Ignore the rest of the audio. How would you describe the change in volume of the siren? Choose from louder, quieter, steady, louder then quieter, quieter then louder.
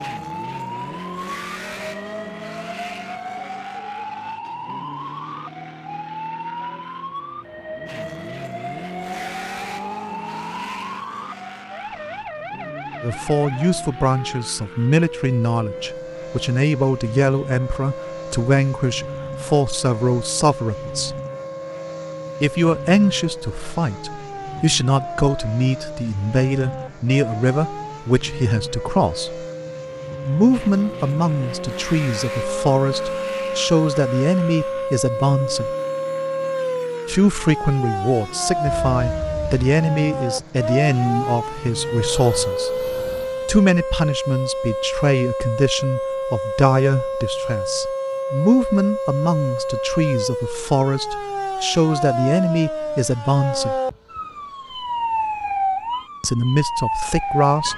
louder.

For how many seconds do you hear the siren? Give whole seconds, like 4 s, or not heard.
58 s.